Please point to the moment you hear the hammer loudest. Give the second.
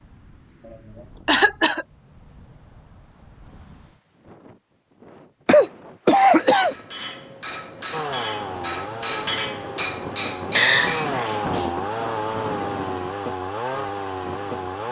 9 s.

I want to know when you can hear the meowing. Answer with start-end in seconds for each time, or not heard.
not heard.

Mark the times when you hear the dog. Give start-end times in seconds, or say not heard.
not heard.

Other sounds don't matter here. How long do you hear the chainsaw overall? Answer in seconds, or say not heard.
7 s.